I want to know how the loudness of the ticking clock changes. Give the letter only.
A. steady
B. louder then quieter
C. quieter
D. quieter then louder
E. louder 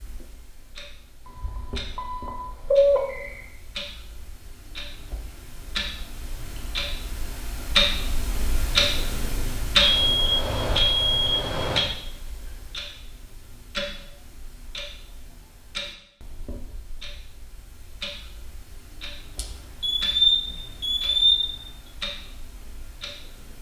B.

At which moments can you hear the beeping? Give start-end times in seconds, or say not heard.
1.2-3.4, 9.8-11.8, 19.4-21.6.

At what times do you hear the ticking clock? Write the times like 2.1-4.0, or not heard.
0.0-23.5.